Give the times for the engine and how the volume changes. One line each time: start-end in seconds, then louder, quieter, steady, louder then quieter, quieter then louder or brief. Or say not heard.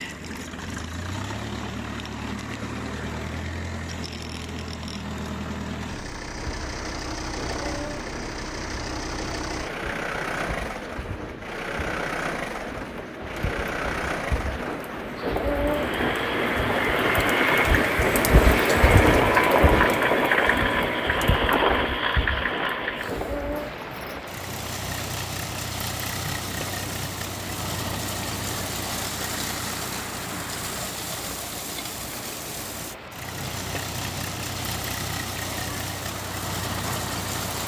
0.0-37.6 louder then quieter.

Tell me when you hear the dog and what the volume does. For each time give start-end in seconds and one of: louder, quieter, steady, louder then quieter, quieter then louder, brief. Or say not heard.
not heard.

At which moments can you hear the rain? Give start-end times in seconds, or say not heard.
6.3-37.6.